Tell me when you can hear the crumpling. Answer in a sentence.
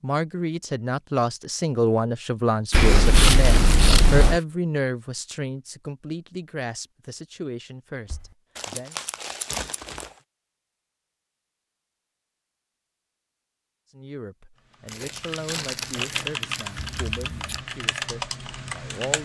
The crumpling can be heard from 2.7 to 4.5 s, from 8.6 to 10.2 s and from 14.8 to 17.2 s.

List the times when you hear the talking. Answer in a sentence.
You can hear the talking from 0.0 to 8.9 s and from 13.9 to 19.2 s.